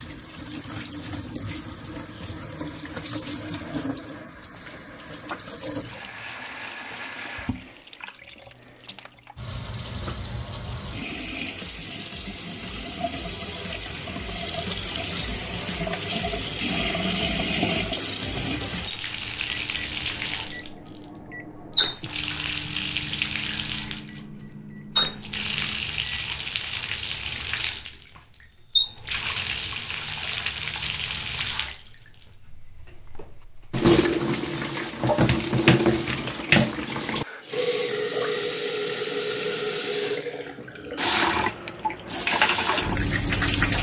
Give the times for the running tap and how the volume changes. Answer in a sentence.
The running tap can be heard from 0.0 to 43.7 s, getting louder.